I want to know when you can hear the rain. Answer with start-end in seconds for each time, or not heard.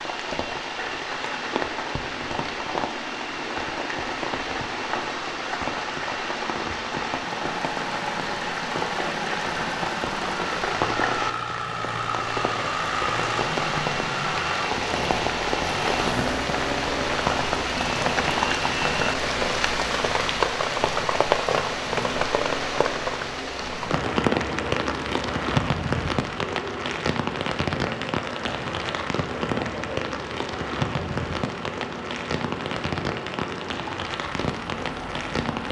0.0-35.6.